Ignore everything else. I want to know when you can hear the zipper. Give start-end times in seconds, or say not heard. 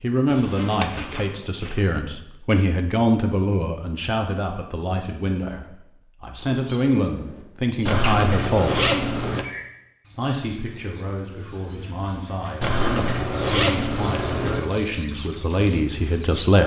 0.3-1.2, 7.8-9.4, 12.6-14.6.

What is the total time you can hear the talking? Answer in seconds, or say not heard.
15 s.